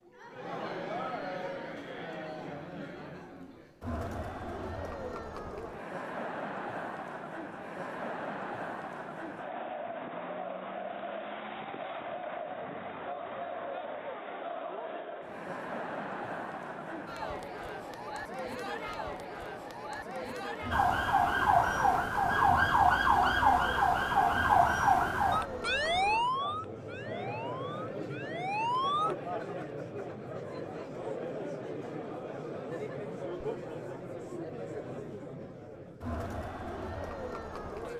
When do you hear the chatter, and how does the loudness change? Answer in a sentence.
The chatter can be heard from 0.0 to 37.9 s, at a steady volume.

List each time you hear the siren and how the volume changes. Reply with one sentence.
The siren can be heard from 20.7 to 29.1 s, getting quieter.